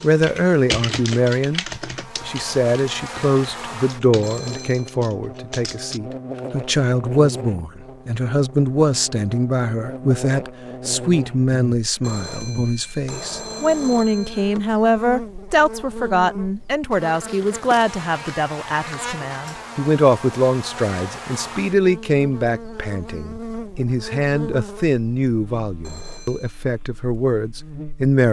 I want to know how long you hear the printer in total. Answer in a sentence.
You can't hear the printer here.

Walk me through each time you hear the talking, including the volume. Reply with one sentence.
The talking can be heard from 0.0 to 28.2 s, at a steady volume.